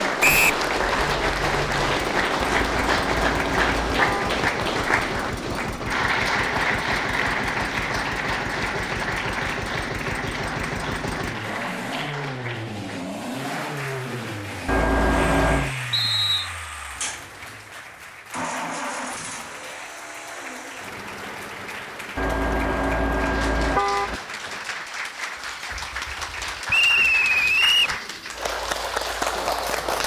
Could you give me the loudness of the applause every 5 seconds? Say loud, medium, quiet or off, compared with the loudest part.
loud, loud, medium, quiet, quiet, medium.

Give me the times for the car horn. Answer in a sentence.
The car horn can be heard from 2.4 to 4.4 s, from 14.7 to 15.8 s and from 22.1 to 24.2 s.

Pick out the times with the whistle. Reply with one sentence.
The whistle can be heard from 0.2 to 0.7 s, from 15.9 to 16.5 s and from 26.6 to 27.9 s.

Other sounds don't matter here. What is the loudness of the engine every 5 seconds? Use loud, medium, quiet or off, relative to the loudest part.
loud, loud, loud, loud, medium, quiet.